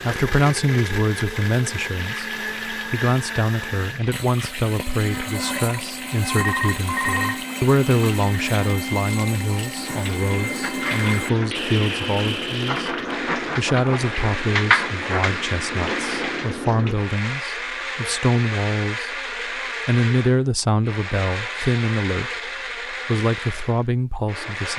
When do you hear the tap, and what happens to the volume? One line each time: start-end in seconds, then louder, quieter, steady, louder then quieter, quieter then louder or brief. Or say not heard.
1.9-16.9 louder.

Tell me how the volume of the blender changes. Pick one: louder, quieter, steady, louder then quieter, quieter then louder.
steady.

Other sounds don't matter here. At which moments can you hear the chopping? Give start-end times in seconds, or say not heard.
not heard.